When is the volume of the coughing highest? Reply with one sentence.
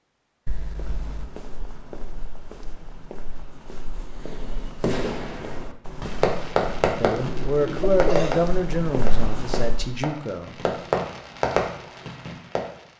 The loudest moment of the coughing is at 8 seconds.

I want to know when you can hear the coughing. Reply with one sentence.
The coughing can be heard from 0.5 to 1.3 s and from 7.2 to 8.4 s.